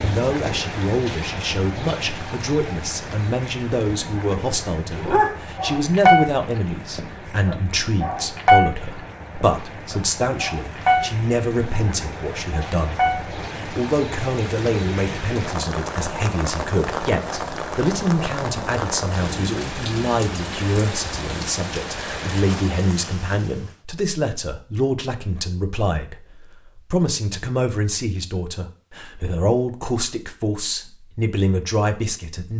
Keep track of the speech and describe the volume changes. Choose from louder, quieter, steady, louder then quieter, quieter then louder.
steady.